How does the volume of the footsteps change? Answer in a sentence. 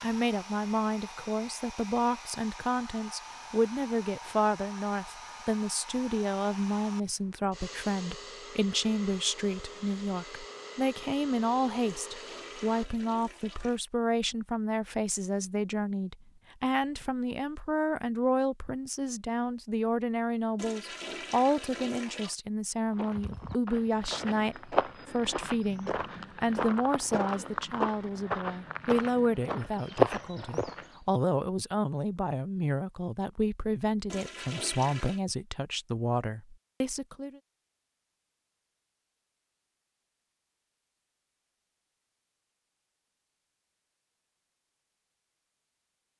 The volume of the footsteps goes up.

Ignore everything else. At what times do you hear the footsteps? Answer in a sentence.
The footsteps can be heard from 22.9 to 31.0 s.